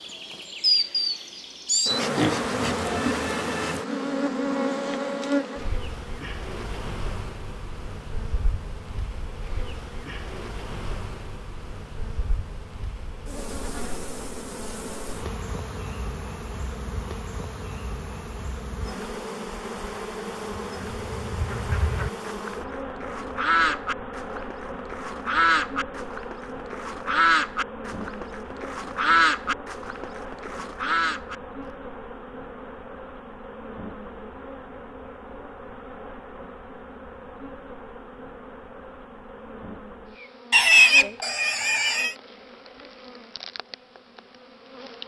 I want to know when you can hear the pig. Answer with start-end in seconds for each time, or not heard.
2.1-3.2, 40.5-42.1.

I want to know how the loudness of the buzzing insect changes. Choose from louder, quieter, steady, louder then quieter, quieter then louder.
quieter.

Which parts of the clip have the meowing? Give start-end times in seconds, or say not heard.
not heard.